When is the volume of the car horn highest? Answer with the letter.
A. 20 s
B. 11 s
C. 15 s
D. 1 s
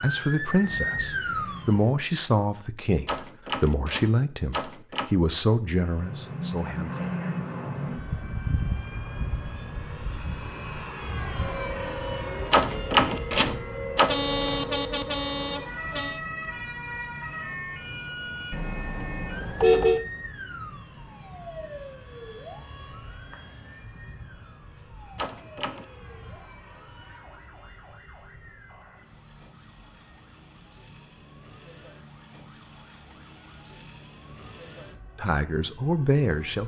A.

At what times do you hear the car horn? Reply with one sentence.
The car horn can be heard from 14.1 to 16.2 s and from 18.5 to 20.0 s.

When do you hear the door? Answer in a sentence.
You can hear the door from 3.0 to 5.1 s, from 12.5 to 14.2 s and from 25.1 to 25.9 s.